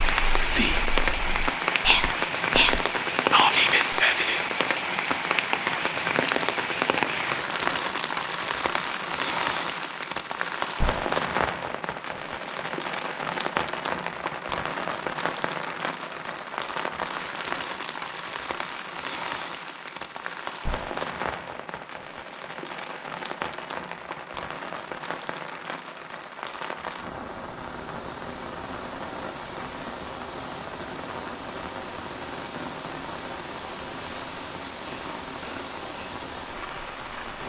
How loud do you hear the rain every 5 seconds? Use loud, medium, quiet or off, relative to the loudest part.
loud, loud, loud, medium, medium, medium, medium, medium.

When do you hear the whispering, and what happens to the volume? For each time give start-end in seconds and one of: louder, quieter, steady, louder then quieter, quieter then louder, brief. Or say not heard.
0.0-4.4 quieter then louder.